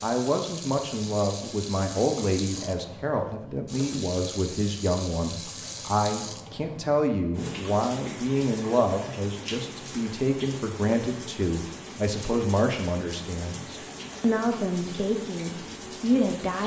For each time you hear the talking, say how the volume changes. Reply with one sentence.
You can hear the talking from 0.0 to 16.6 s, at a steady volume.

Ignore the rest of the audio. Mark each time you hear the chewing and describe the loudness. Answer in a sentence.
The chewing can't be heard in this clip.